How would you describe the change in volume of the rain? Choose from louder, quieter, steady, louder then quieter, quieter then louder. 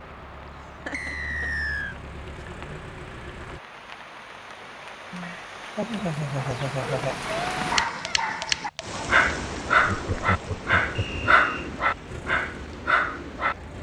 louder then quieter.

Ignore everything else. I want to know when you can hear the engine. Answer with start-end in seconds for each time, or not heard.
0.0-3.6, 12.1-13.7.